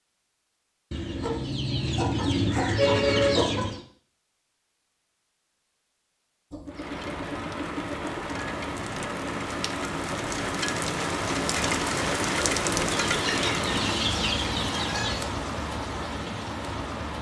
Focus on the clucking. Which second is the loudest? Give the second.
3 s.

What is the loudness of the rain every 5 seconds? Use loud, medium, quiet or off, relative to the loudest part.
off, medium, loud, medium.